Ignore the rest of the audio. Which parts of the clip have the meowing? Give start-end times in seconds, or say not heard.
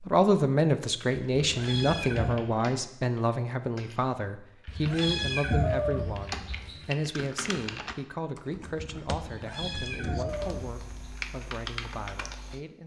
1.3-2.4, 4.7-6.8, 9.2-11.1.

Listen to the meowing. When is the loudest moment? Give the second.
6 s.